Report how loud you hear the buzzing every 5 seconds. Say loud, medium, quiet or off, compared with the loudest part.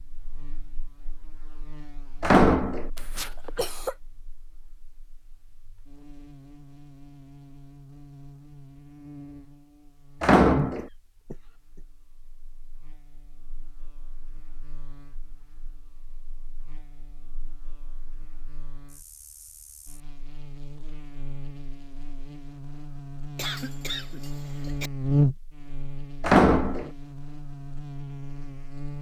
quiet, quiet, quiet, quiet, medium, loud.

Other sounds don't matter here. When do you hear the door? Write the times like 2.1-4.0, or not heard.
2.2-2.9, 10.2-10.8, 26.2-26.9.